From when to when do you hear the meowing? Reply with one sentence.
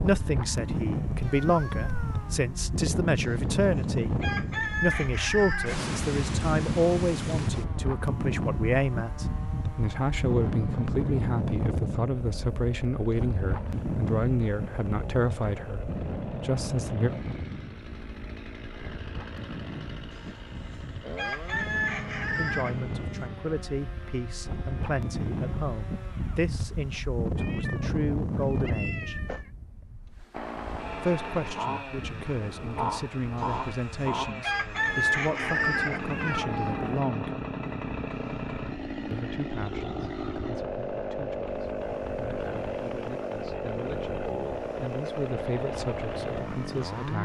The meowing can be heard from 1.2 to 2.4 s, from 27.4 to 29.5 s and from 36.0 to 37.0 s.